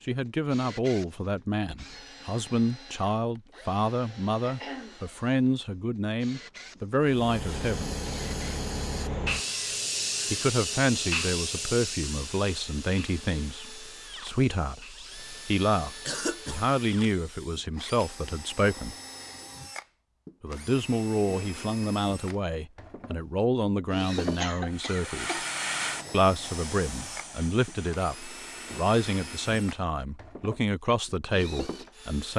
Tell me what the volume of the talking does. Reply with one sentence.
The volume of the talking stays about the same.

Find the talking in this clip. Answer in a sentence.
The talking can be heard from 0.1 to 8.0 s, from 10.3 to 18.9 s, from 20.4 to 25.4 s and from 26.1 to 32.3 s.